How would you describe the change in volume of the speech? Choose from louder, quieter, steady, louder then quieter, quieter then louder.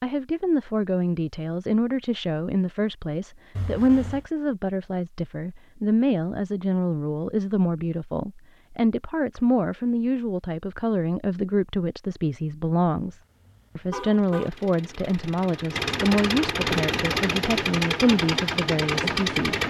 steady.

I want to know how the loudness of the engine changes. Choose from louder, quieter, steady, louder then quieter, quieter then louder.
louder.